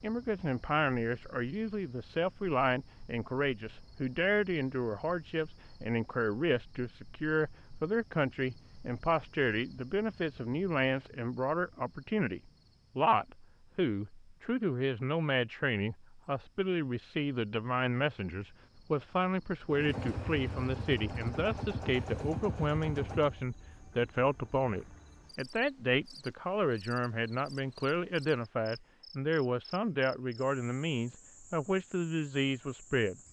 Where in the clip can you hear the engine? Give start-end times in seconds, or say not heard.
19.6-23.4.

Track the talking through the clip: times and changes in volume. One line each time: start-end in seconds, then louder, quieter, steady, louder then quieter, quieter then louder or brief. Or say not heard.
0.0-33.1 steady.